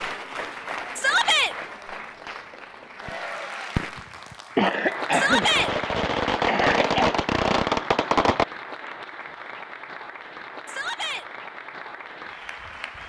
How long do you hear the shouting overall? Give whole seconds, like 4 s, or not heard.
2 s.